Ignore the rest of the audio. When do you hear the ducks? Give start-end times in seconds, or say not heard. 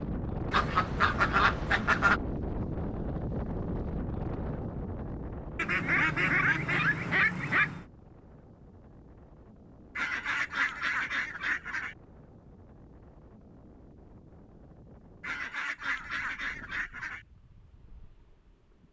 0.5-2.2, 5.5-7.8, 9.9-11.9, 15.2-17.2.